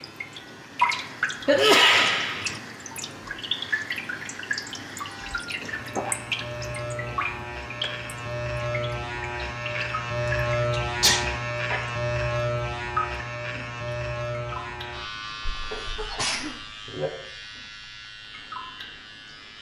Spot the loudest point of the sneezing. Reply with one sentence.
The volume of the sneezing peaks at 2 seconds.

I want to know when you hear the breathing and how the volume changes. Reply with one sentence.
You can't hear the breathing here.